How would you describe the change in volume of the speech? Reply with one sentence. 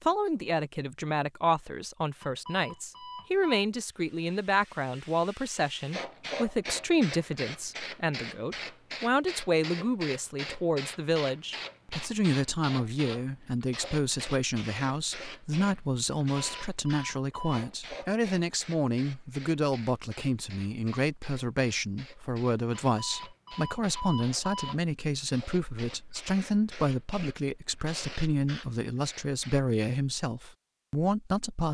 The loudness of the speech stays about the same.